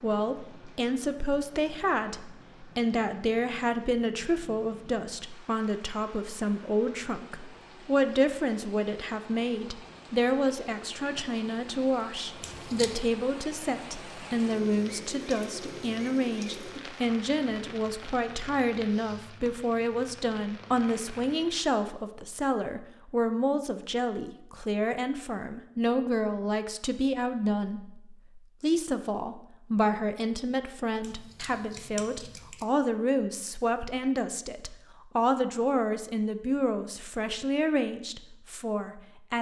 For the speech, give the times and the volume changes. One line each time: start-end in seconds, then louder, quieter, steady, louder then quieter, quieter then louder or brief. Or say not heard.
0.0-39.3 steady.